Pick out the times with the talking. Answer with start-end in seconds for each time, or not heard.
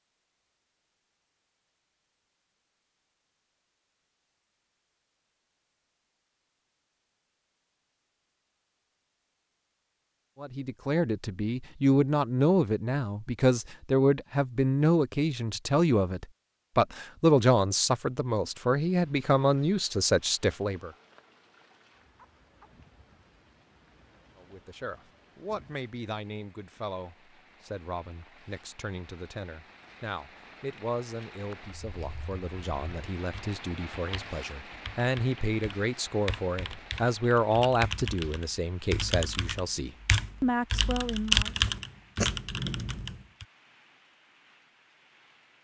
10.4-20.9, 24.4-41.5.